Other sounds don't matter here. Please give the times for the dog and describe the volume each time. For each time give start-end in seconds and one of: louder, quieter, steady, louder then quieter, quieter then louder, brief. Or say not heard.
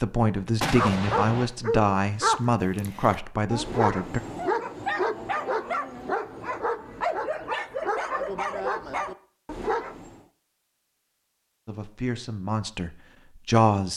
0.8-10.2 steady.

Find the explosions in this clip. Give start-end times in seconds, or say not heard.
0.6-1.5.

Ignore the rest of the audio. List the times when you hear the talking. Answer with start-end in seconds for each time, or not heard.
0.0-4.2, 11.7-13.9.